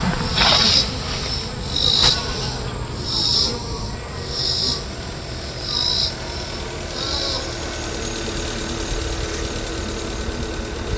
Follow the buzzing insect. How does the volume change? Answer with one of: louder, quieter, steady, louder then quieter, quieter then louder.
quieter.